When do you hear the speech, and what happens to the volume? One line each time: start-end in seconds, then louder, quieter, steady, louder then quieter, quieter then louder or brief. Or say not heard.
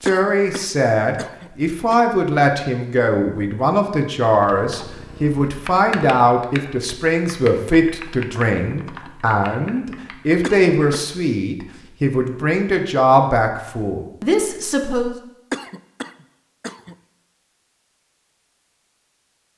0.0-15.2 steady.